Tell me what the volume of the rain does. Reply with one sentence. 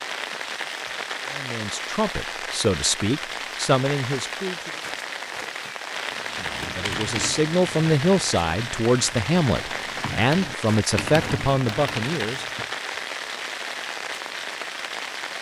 The loudness of the rain stays about the same.